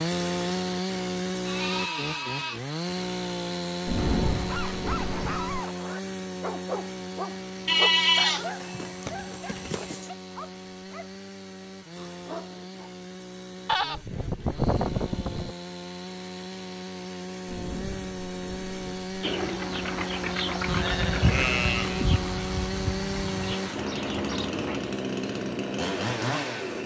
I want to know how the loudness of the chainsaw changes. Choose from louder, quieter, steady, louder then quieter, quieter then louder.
quieter then louder.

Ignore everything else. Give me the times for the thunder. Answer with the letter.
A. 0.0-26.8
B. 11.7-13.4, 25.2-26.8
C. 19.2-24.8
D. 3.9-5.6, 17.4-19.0
D.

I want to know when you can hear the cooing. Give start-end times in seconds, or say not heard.
19.2-24.8.